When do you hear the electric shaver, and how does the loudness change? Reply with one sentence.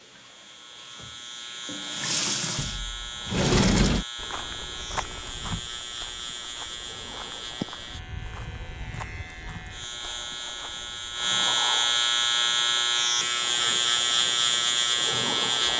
The electric shaver can be heard from 0.0 to 15.7 s, getting louder.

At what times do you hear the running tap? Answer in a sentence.
The running tap can be heard from 0.0 to 2.8 s.